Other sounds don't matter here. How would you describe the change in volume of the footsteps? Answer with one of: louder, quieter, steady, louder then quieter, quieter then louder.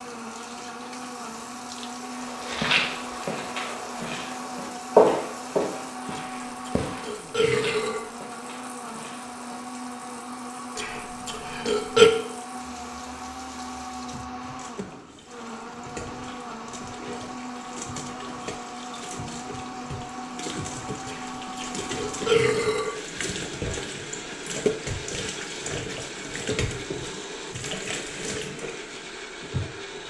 louder then quieter.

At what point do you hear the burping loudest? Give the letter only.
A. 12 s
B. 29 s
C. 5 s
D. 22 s
A.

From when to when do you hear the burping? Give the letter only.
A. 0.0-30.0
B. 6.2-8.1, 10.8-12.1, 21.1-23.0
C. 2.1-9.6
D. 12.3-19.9
B.